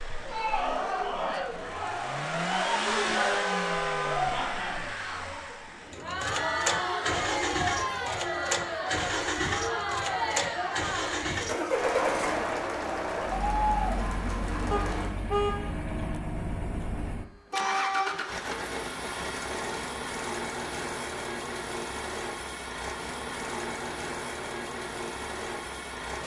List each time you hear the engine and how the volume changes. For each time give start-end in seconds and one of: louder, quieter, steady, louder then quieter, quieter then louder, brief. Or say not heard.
0.0-26.2 steady.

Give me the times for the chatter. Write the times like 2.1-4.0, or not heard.
0.1-15.1.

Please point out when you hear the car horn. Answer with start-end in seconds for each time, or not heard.
3.1-4.2, 14.7-15.7, 17.5-18.2.